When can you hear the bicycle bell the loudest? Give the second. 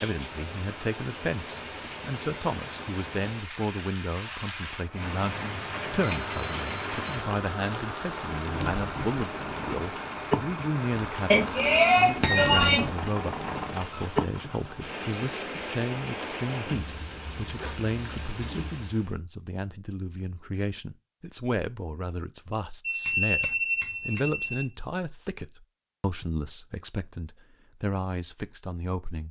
12 s.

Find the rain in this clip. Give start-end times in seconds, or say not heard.
0.0-19.1.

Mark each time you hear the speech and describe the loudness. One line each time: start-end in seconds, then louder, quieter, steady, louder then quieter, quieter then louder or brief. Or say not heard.
0.0-29.2 steady.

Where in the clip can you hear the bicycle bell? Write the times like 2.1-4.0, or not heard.
6.0-7.2, 11.3-12.8, 22.8-24.6.